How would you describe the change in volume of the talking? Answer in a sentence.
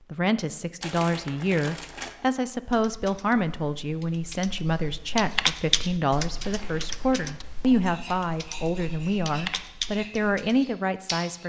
The loudness of the talking stays about the same.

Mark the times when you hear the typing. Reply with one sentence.
The typing can be heard from 2.5 to 10.6 s.